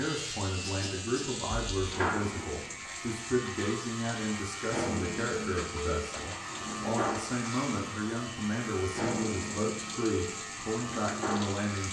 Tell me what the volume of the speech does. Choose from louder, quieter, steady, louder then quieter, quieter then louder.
steady.